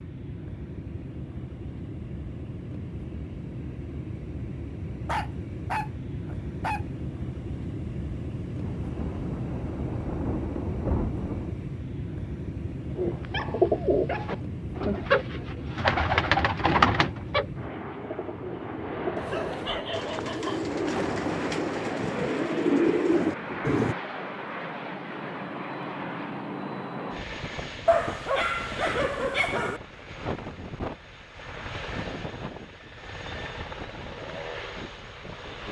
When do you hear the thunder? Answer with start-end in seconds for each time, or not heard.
8.6-11.6, 20.9-23.8.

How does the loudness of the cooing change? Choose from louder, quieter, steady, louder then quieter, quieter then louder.
quieter then louder.